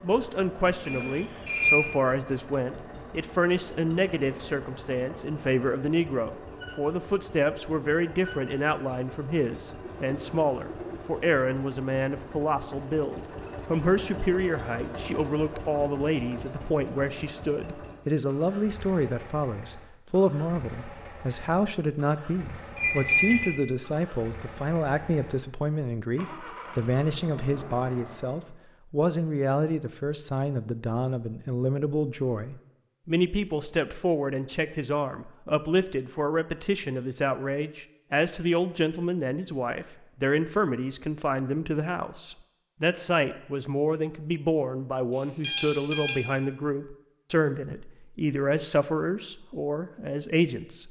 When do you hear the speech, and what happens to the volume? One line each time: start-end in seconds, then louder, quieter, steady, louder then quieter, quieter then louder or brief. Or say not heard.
0.0-50.8 steady.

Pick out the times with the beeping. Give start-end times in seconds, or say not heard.
0.8-1.9, 22.8-23.6, 45.4-46.1.